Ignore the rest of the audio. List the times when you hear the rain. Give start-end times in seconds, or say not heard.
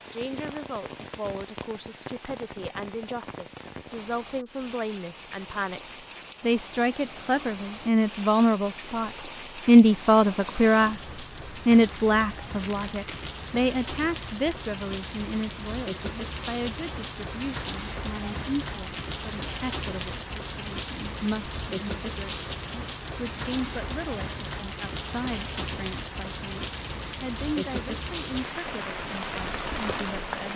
0.0-30.5.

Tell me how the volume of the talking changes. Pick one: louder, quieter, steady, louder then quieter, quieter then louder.
louder then quieter.